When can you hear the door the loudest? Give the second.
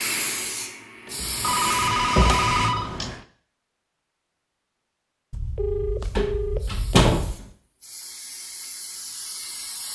7 s.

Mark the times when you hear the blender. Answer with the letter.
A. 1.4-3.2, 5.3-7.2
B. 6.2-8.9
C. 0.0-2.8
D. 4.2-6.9
C.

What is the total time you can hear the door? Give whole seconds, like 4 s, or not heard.
3 s.